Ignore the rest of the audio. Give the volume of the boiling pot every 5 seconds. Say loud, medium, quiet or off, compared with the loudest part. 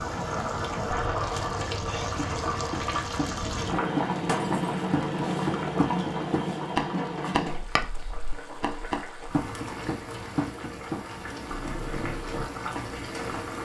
loud, loud, medium.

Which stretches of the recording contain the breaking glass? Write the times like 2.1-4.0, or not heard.
4.2-4.8.